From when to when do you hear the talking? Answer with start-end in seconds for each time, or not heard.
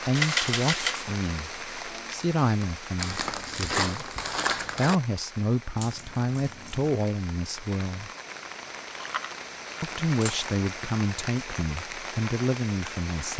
0.1-8.1, 9.8-13.3.